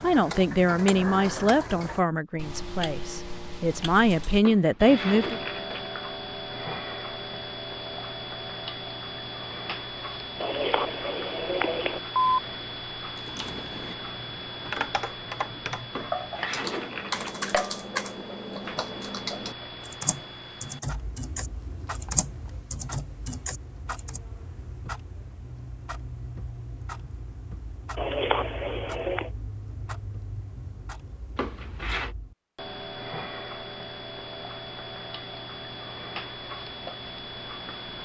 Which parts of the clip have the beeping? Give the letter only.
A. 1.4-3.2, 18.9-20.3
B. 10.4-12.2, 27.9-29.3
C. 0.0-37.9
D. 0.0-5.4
B.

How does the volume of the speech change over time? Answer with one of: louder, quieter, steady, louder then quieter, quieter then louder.
quieter then louder.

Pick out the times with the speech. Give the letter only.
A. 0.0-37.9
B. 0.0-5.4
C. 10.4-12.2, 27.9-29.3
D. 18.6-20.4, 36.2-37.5
B.